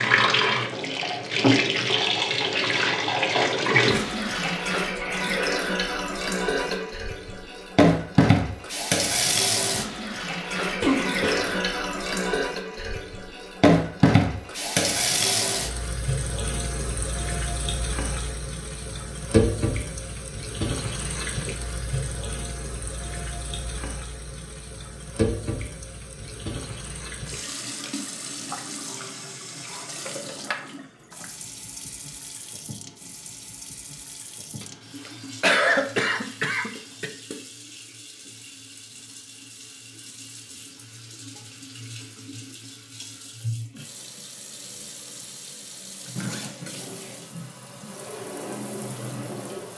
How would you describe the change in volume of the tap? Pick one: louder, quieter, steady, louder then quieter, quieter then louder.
quieter.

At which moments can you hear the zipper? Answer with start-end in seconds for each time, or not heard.
not heard.